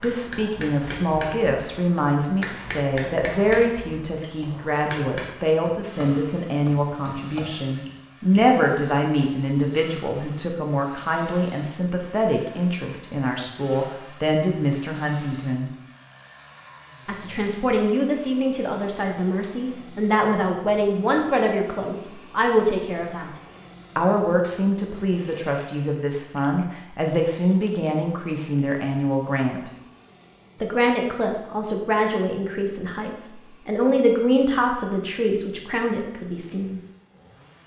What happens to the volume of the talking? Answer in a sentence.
The loudness of the talking stays about the same.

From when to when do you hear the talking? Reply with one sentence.
The talking can be heard from 0.0 to 15.7 s, from 17.1 to 23.3 s, from 23.9 to 29.7 s and from 30.6 to 36.8 s.